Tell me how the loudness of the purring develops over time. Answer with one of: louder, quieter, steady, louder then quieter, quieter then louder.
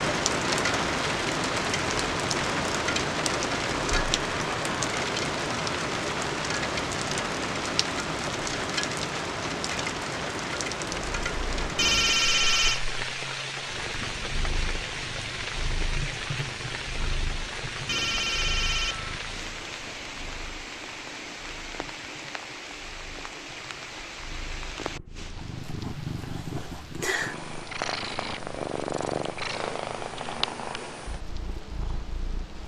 quieter then louder.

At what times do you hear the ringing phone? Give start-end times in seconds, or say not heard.
11.8-12.8, 17.9-19.2.